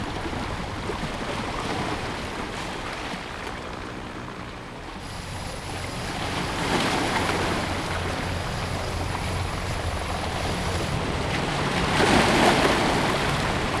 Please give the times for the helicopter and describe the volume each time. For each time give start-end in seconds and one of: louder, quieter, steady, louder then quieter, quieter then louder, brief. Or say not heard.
0.0-13.7 louder.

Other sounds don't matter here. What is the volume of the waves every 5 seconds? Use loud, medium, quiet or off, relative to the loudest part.
medium, medium, loud.